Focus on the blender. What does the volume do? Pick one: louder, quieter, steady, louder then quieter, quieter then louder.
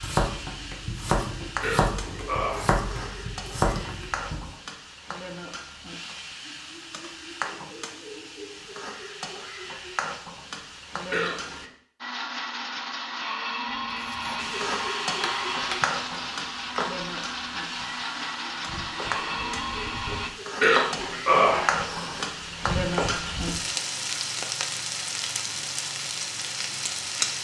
steady.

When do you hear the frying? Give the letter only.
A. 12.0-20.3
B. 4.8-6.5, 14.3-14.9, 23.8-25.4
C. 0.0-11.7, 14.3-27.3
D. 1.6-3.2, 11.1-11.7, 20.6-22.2
C.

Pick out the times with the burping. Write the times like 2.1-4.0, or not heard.
1.6-3.2, 11.1-11.7, 20.6-22.2.